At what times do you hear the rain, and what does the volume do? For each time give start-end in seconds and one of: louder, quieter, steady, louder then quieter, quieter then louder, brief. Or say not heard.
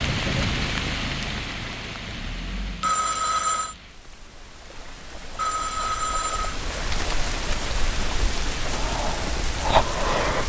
0.0-10.4 quieter then louder.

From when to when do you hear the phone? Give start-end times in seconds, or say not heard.
2.8-3.8, 5.3-6.5.